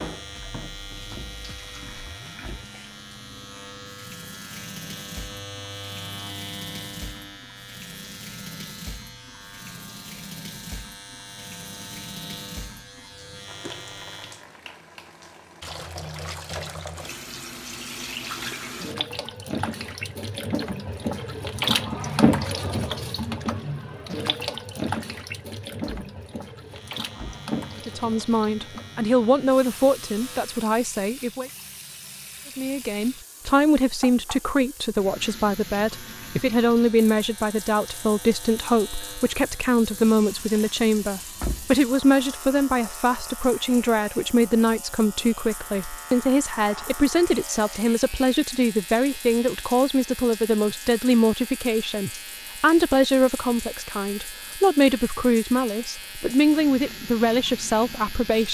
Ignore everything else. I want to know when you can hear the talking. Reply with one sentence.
The talking can be heard from 27.9 to 31.5 s and from 32.5 to 58.5 s.